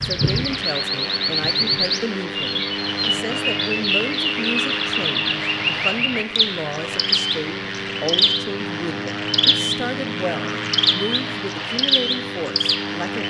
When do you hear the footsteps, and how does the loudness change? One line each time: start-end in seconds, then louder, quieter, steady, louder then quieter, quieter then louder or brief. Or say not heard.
not heard.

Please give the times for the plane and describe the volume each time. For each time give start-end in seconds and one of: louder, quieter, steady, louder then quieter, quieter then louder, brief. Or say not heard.
0.0-13.2 steady.